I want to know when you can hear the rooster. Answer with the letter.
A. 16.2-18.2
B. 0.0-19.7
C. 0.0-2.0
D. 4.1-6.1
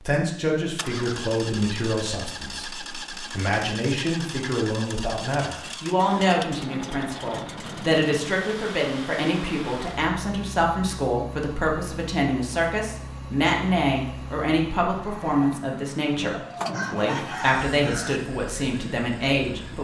A.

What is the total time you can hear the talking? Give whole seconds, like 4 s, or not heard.
20 s.